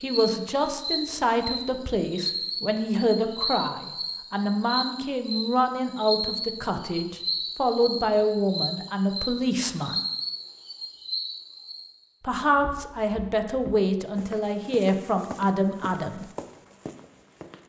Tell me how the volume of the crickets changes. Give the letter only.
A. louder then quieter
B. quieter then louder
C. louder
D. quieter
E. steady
E.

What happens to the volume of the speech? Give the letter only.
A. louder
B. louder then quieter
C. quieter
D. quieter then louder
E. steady
E.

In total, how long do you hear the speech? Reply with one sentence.
The speech can be heard for 14 seconds in total.